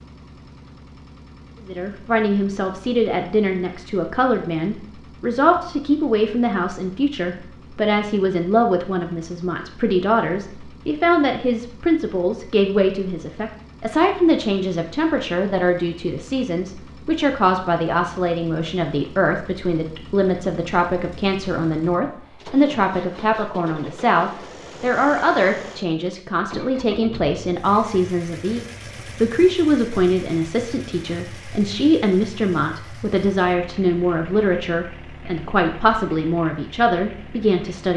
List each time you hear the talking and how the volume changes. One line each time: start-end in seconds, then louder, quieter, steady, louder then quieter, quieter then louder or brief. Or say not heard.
1.6-37.9 steady.